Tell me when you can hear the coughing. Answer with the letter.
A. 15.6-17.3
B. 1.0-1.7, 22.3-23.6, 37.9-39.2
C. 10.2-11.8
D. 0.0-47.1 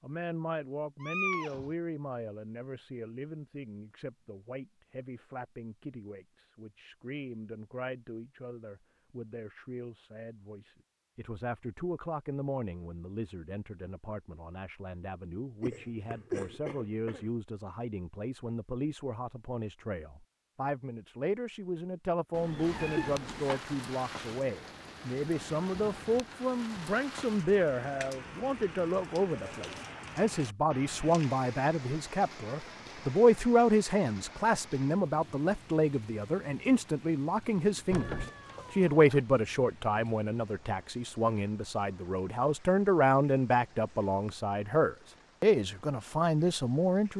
A.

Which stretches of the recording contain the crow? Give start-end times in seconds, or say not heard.
not heard.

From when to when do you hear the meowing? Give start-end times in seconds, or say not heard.
1.0-1.7, 22.3-23.6, 37.9-39.2.